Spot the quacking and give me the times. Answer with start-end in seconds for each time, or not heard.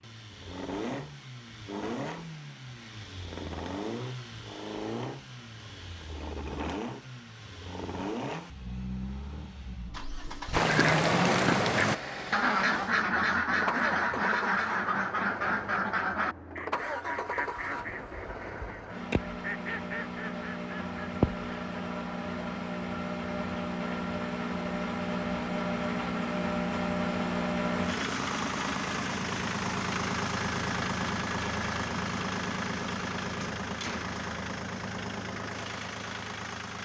10.5-21.9.